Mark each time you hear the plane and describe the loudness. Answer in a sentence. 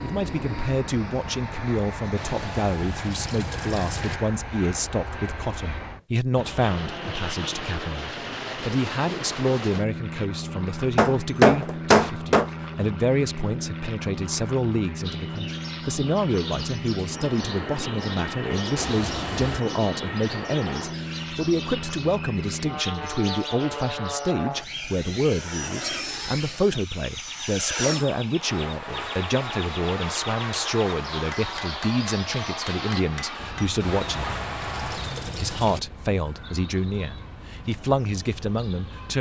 You can hear the plane from 0.0 to 35.2 s, at a steady volume.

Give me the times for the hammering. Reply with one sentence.
You can hear the hammering from 10.9 to 12.4 s and from 31.3 to 33.7 s.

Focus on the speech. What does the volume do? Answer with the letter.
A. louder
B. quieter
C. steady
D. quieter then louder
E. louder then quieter
C.